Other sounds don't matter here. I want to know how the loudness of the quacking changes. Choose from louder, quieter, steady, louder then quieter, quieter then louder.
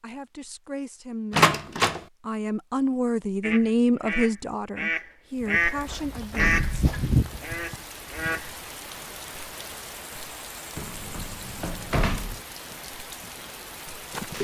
louder then quieter.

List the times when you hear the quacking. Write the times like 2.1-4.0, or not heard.
3.4-8.6.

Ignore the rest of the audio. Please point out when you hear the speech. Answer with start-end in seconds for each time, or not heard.
0.0-7.0.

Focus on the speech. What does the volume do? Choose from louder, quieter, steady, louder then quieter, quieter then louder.
louder then quieter.